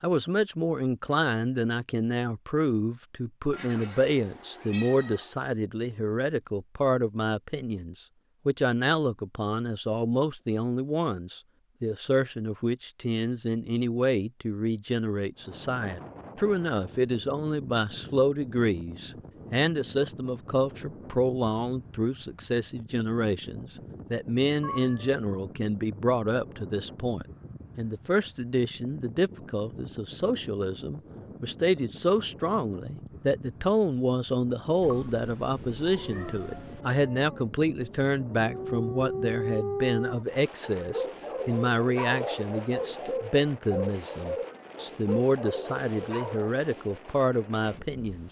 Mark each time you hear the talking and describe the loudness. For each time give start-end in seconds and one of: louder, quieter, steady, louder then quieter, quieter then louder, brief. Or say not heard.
0.0-48.2 steady.